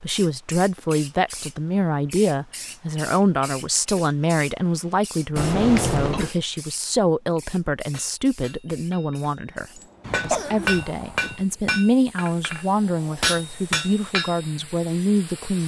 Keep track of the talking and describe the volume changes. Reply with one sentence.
The loudness of the talking stays about the same.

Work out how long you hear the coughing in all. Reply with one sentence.
The coughing can be heard for 2 seconds in total.